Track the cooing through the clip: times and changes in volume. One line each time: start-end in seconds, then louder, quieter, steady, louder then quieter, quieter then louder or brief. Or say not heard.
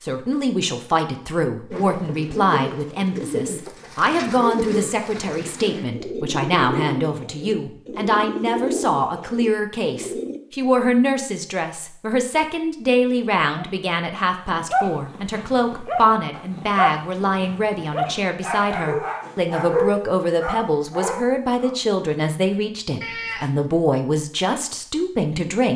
1.7-10.4 steady.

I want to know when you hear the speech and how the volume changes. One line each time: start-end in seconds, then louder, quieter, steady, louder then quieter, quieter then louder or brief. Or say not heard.
0.0-25.7 steady.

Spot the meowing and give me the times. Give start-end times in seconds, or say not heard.
23.0-23.7.